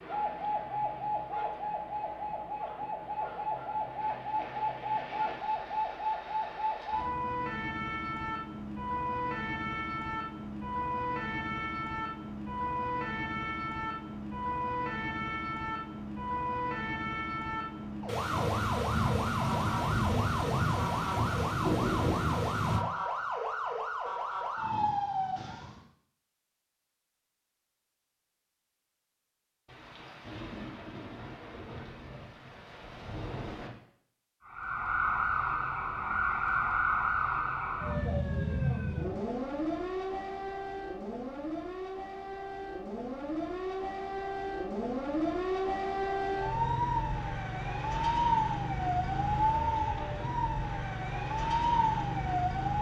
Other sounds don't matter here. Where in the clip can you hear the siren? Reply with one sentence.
You can hear the siren from 0.0 to 25.8 s and from 34.5 to 52.7 s.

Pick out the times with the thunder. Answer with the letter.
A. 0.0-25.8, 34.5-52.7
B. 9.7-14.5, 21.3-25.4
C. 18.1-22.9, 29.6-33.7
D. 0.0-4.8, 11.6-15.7
C.